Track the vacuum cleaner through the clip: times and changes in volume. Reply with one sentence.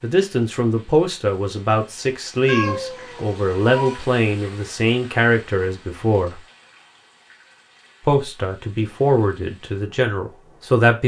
You can't hear the vacuum cleaner here.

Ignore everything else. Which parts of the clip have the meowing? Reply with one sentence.
The meowing can be heard from 2.5 to 4.0 s.